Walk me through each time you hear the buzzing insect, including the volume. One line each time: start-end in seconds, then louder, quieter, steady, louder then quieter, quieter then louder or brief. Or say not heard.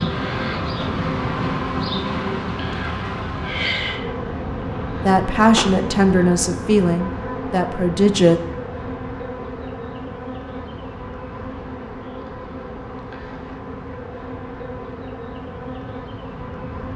0.0-16.9 quieter.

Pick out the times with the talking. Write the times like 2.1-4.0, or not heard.
5.0-8.4.